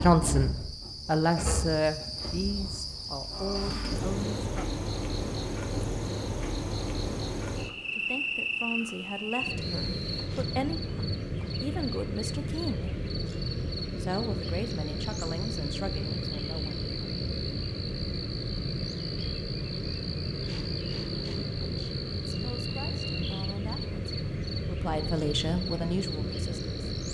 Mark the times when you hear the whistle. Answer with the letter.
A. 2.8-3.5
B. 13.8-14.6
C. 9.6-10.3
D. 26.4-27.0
C.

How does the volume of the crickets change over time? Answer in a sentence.
The volume of the crickets stays about the same.